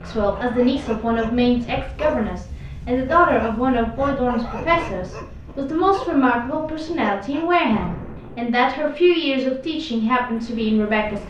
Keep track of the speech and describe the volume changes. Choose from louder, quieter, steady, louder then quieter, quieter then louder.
steady.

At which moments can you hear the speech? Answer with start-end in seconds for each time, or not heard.
0.0-11.2.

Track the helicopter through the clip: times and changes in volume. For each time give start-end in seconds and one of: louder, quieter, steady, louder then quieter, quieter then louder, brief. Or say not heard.
not heard.